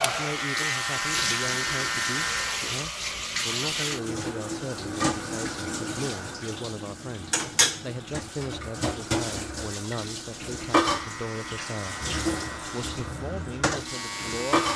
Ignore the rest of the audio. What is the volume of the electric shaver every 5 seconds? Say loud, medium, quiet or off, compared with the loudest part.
loud, off, medium.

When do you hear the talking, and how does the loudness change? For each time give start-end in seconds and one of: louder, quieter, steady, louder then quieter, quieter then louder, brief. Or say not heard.
0.0-14.7 steady.